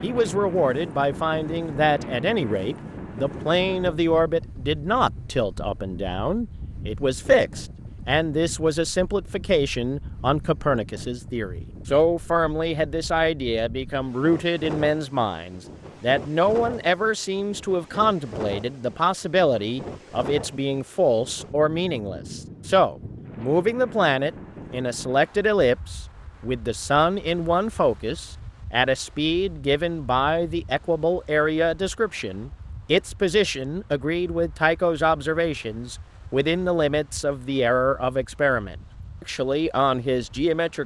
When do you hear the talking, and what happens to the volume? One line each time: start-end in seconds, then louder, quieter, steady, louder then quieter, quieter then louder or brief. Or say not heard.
0.0-40.8 steady.